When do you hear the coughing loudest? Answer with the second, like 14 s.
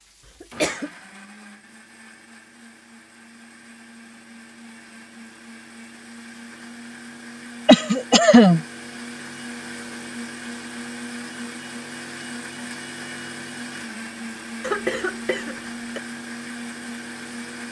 8 s.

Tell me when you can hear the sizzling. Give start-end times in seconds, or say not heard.
not heard.